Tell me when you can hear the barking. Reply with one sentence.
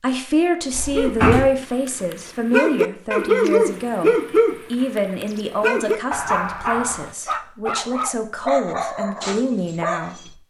You can hear the barking from 0.9 to 10.3 s.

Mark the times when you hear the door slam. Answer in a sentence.
You can hear the door slam from 0.7 to 1.4 s.